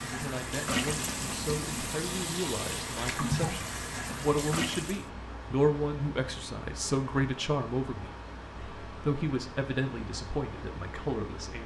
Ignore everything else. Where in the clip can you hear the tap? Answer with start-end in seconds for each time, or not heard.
0.0-5.0.